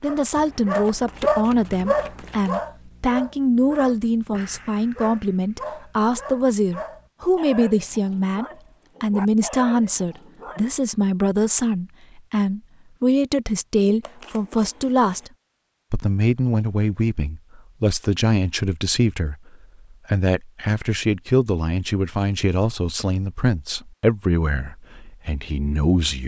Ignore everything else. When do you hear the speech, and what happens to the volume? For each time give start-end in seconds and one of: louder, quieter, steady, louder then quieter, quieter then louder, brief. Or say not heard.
0.0-15.3 steady
15.9-26.2 steady.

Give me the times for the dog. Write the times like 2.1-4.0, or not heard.
0.0-10.7.